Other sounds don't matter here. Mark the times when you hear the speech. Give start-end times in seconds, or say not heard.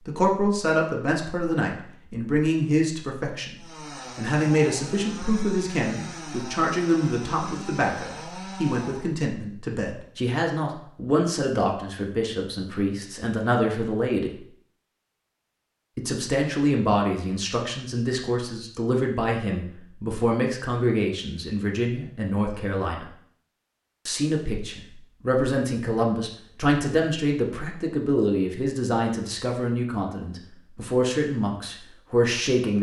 0.1-14.4, 15.9-23.1, 24.1-32.7.